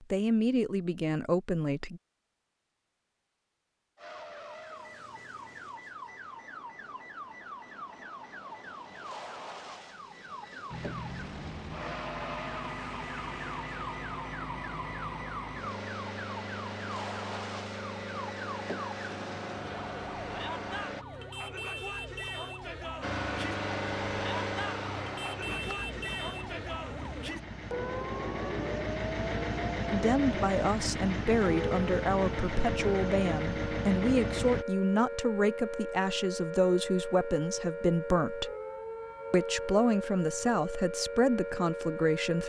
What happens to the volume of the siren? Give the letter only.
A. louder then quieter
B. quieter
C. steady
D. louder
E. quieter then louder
D.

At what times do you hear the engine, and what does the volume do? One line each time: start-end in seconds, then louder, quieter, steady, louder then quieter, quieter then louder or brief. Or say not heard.
10.7-21.1 steady
23.0-34.6 quieter then louder.